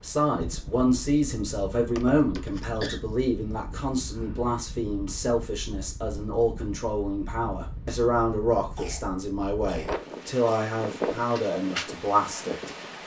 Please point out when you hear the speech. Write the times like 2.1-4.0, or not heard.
0.0-13.0.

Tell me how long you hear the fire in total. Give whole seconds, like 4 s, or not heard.
not heard.